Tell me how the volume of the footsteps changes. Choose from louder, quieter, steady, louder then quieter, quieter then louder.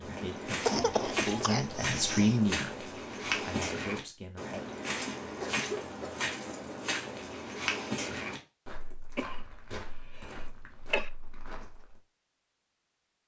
quieter.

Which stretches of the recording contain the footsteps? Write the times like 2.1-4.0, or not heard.
0.0-12.0.